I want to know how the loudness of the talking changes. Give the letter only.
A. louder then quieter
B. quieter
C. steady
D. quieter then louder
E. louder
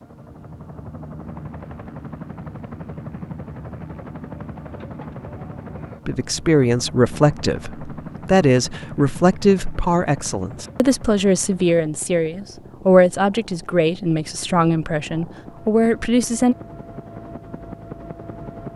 C.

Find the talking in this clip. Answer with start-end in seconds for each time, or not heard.
6.0-16.6.